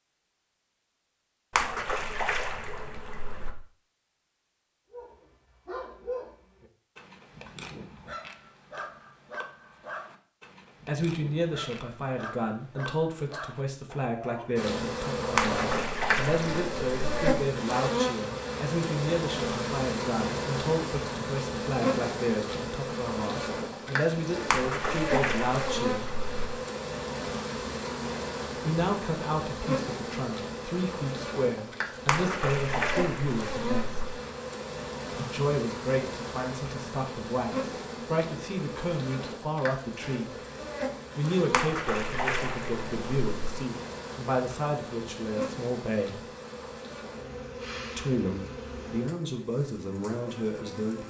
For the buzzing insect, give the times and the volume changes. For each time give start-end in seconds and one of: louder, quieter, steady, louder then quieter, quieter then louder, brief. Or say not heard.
14.6-51.0 quieter.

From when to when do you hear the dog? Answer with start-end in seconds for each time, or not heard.
4.9-14.6.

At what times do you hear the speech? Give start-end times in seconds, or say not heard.
10.8-26.1, 28.6-34.0, 35.1-40.4, 41.1-46.2, 48.0-51.0.